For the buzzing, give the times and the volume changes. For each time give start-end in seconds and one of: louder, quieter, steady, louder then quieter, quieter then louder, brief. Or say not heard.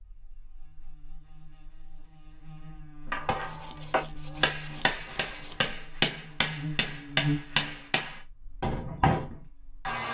0.0-10.0 louder then quieter.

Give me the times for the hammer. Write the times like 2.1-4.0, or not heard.
3.1-9.3.